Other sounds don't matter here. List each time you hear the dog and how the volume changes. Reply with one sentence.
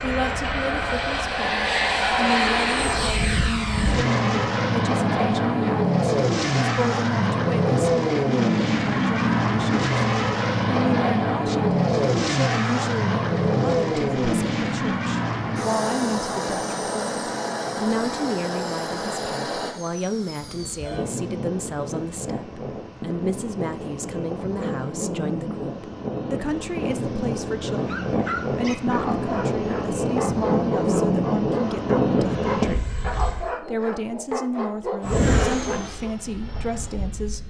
You can hear the dog from 27.7 to 36.1 s, at a steady volume.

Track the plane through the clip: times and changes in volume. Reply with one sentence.
The plane can be heard from 0.0 to 33.5 s, getting quieter then louder; and briefly from 35.0 to 37.4 s.